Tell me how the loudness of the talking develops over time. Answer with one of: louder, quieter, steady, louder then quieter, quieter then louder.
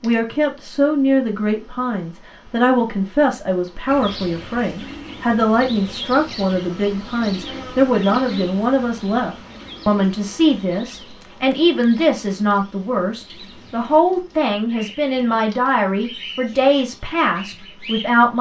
steady.